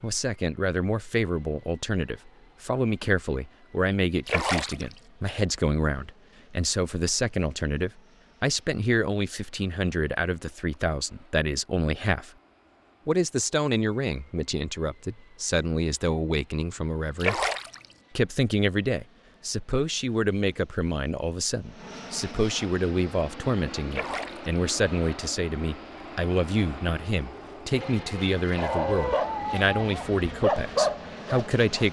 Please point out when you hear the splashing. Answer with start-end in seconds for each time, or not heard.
4.2-4.8, 17.2-17.9, 23.9-24.5.